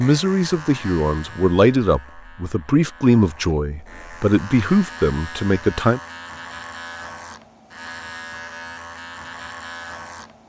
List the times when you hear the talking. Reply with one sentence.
The talking can be heard from 0.0 to 6.0 s.